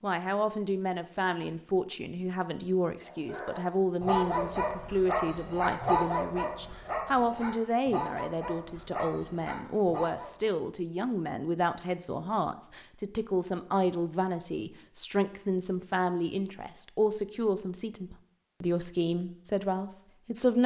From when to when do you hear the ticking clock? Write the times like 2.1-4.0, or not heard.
not heard.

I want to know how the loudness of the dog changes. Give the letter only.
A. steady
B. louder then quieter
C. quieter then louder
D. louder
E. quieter
E.